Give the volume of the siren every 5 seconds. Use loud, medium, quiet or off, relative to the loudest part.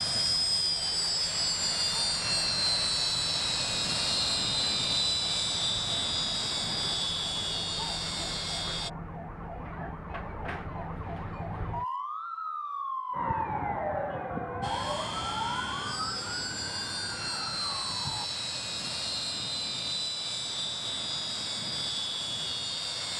quiet, medium, loud, loud, off.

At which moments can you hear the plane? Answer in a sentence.
The plane can be heard from 0.0 to 8.9 s and from 14.6 to 23.1 s.